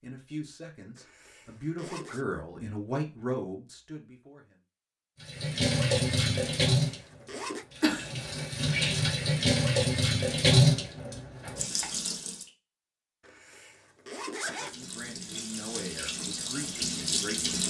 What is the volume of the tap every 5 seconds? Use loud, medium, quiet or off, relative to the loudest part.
off, loud, loud, medium.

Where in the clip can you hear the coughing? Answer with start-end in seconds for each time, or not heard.
7.8-8.4.